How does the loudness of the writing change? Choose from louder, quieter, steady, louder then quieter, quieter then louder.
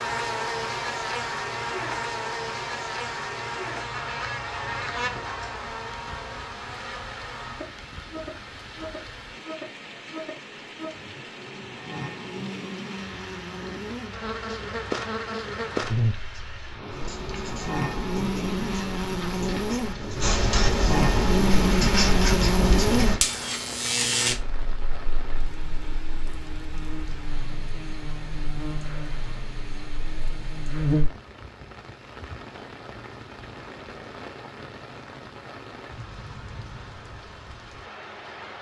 louder.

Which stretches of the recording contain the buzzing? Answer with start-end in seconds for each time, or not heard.
0.0-31.1.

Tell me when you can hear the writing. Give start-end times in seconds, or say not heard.
16.9-23.2.